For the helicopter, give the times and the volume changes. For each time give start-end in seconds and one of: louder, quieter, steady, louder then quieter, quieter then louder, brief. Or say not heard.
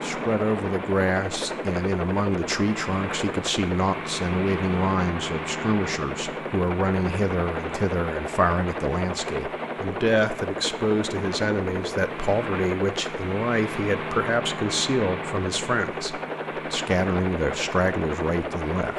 0.0-18.9 steady.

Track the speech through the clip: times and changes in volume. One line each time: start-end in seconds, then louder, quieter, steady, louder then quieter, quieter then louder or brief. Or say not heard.
0.0-18.9 steady.